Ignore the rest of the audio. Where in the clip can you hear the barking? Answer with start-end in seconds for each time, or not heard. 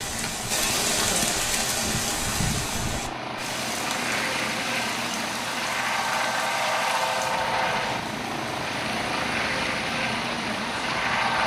not heard.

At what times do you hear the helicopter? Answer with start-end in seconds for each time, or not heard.
0.0-11.4.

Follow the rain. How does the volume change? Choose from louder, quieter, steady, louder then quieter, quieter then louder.
quieter.